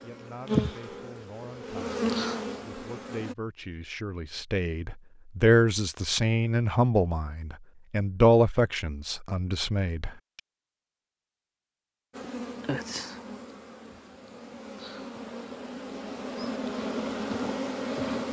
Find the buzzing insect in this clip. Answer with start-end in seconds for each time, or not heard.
0.0-3.4, 12.2-18.2.